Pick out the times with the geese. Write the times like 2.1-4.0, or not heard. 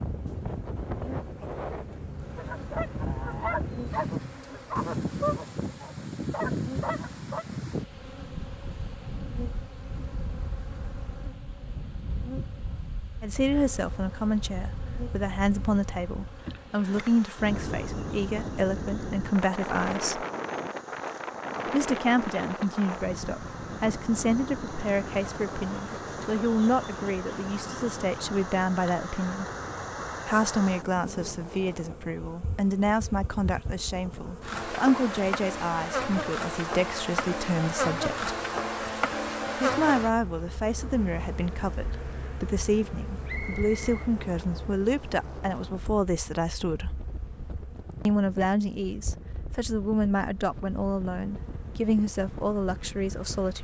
2.4-7.5.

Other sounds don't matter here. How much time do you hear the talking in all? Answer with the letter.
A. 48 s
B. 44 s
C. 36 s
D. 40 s
C.